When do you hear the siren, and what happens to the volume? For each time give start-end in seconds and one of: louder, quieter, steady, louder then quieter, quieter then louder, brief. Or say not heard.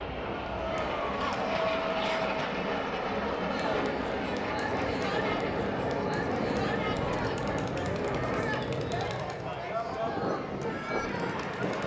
not heard.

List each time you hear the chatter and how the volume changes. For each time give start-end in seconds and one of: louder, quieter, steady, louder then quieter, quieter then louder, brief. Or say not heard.
0.2-11.8 steady.